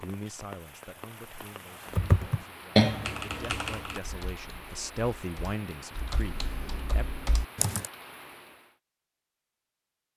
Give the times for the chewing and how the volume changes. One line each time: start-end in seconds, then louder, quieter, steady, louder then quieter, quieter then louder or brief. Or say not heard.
not heard.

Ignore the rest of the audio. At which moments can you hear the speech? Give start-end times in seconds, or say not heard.
0.0-7.0.